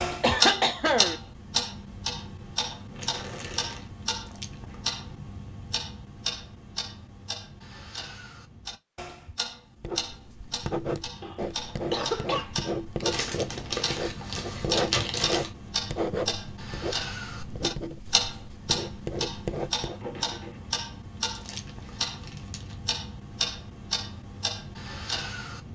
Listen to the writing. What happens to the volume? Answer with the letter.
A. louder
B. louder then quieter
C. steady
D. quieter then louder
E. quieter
C.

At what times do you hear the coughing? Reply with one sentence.
The coughing can be heard from 0.2 to 1.1 s, from 11.2 to 13.1 s and from 20.0 to 20.6 s.